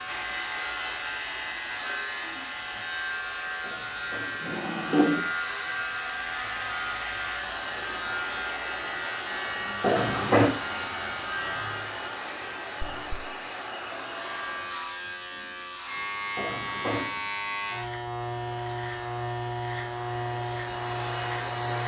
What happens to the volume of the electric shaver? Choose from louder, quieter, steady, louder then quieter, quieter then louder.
steady.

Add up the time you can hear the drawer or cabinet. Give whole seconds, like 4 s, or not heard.
3 s.